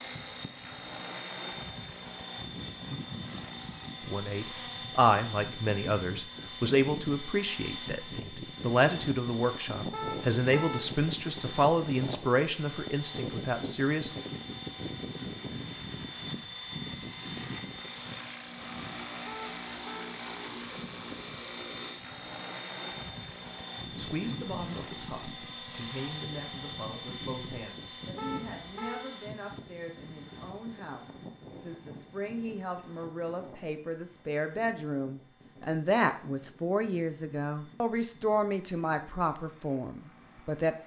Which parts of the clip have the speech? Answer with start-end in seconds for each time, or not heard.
4.0-14.1, 23.9-40.8.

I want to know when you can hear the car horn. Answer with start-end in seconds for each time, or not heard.
9.9-10.9, 19.2-20.1, 28.1-29.1.